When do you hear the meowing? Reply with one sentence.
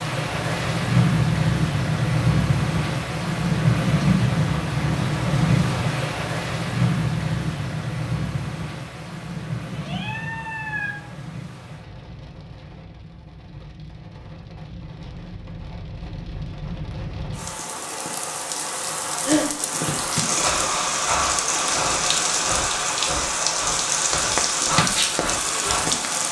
The meowing can be heard from 9.7 to 11.0 s.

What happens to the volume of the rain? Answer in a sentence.
The volume of the rain goes down, then up.